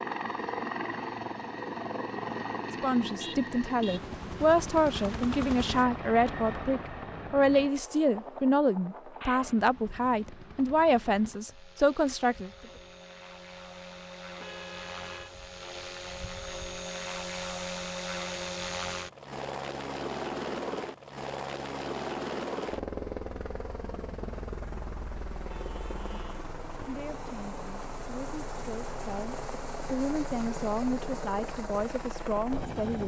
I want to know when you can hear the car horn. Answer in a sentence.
You can hear the car horn from 3.1 to 4.0 s, from 14.3 to 15.3 s and from 25.4 to 26.4 s.